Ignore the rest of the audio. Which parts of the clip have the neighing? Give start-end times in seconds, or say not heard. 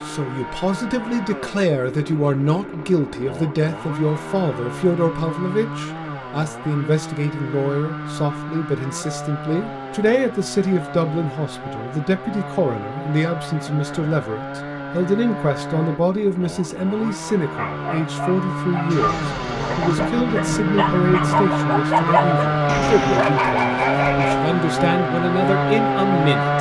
not heard.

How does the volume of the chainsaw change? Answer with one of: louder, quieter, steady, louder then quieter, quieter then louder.
louder.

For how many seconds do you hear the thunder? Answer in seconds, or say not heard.
3 s.